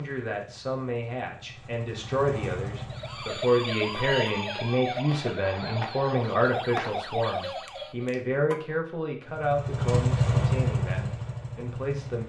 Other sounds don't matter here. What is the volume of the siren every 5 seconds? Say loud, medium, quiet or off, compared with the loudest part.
loud, loud, off.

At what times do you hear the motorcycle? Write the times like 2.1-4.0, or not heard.
0.0-3.5, 9.2-12.2.